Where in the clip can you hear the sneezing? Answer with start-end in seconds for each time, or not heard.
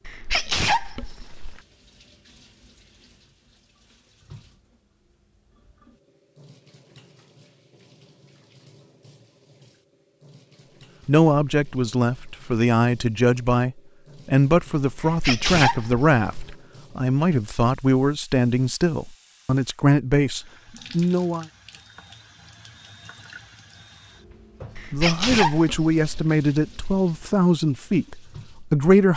0.1-1.6, 14.9-16.6, 24.8-26.3.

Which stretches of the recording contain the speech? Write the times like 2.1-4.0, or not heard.
11.1-21.4, 24.9-29.1.